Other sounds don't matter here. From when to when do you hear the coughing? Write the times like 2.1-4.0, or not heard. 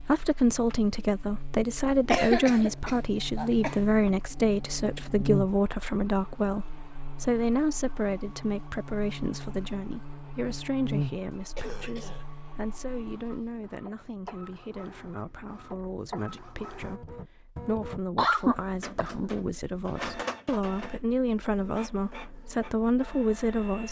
2.0-3.9, 11.6-12.2, 17.8-19.3.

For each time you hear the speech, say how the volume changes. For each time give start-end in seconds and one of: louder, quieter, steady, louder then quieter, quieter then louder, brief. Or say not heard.
0.0-23.8 quieter then louder.